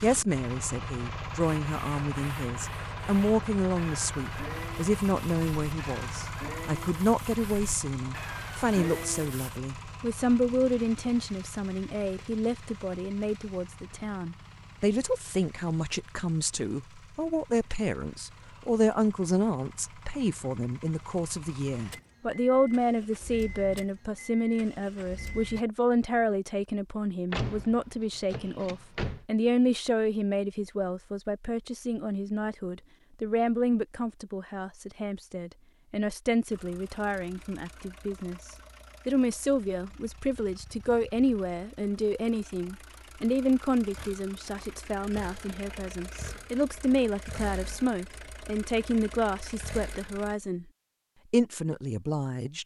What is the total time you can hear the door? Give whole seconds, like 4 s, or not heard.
2 s.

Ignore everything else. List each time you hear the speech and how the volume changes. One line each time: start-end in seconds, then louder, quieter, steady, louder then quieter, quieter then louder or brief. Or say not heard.
0.0-50.6 steady
51.3-52.6 brief.